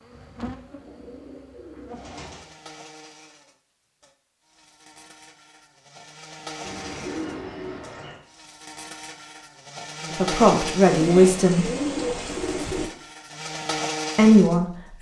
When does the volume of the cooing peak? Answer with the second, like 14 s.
12 s.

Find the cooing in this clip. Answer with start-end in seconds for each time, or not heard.
0.1-2.5, 6.6-8.2, 10.8-12.9.